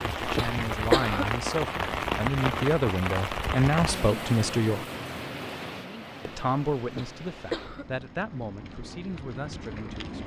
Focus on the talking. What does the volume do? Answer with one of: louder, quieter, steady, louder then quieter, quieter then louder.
louder then quieter.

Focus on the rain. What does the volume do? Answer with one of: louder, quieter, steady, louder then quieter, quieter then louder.
quieter.